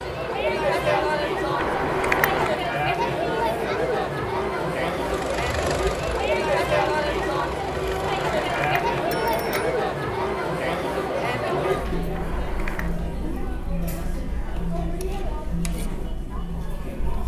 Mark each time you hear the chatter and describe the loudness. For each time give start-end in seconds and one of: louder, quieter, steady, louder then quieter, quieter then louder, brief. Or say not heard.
0.0-17.2 quieter.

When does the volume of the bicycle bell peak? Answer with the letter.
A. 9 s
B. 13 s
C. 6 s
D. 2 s
D.